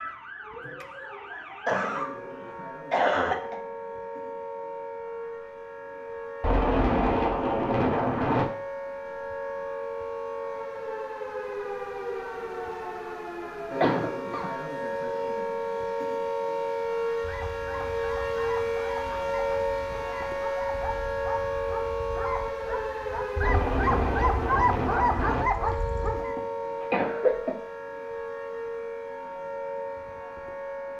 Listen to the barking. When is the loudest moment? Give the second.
25 s.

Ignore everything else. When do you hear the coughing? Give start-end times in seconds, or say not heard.
1.6-2.1, 2.9-3.5, 13.8-14.4, 26.0-27.6.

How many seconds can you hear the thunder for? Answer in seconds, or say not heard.
4 s.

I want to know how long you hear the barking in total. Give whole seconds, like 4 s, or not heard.
9 s.